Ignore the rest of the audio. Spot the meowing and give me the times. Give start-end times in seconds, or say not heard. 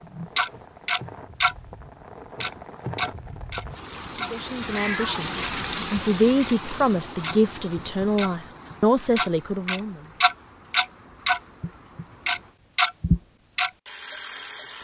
4.7-5.3.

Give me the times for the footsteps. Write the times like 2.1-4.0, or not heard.
not heard.